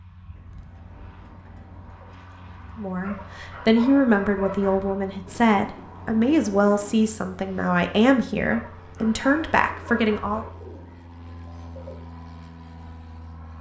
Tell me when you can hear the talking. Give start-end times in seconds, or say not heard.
2.8-10.4.